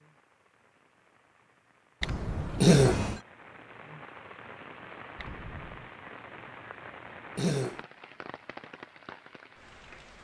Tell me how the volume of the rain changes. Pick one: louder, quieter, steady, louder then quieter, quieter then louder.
louder.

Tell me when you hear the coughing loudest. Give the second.
3 s.